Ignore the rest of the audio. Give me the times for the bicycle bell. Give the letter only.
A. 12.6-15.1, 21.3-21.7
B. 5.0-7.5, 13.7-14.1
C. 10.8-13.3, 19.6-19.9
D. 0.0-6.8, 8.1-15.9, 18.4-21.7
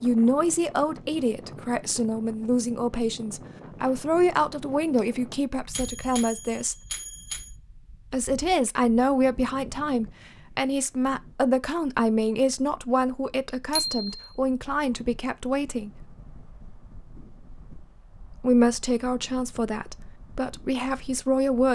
B.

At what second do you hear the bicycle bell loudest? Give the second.
14 s.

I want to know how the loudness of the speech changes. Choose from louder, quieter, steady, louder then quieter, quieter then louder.
steady.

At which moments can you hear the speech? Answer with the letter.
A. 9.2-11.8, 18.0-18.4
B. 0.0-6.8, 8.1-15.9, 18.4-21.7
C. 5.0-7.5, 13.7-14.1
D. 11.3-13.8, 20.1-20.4
B.